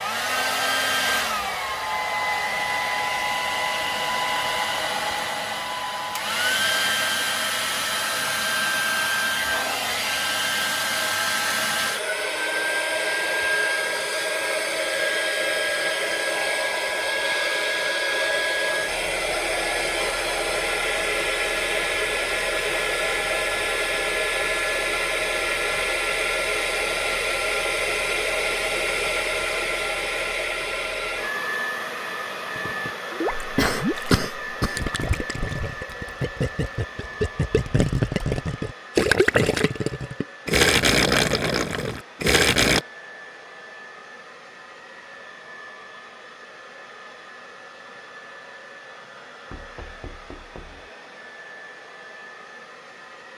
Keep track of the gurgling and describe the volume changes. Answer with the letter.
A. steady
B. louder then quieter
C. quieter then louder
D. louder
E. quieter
D.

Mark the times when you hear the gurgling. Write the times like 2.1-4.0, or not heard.
32.5-42.8.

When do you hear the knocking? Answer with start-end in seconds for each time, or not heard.
49.5-50.9.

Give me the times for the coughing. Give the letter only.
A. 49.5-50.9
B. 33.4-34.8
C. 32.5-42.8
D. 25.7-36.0
B.